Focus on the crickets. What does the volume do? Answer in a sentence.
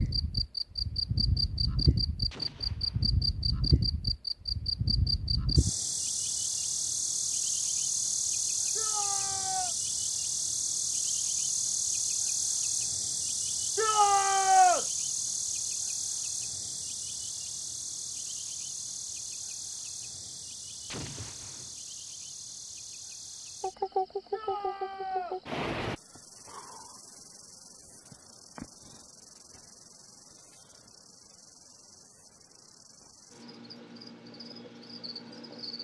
The volume of the crickets goes down.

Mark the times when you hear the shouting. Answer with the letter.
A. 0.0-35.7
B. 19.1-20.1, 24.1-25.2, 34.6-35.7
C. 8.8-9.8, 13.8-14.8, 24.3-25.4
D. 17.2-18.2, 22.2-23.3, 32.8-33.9
C.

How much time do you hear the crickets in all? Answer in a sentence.
The crickets can be heard for 36 seconds in total.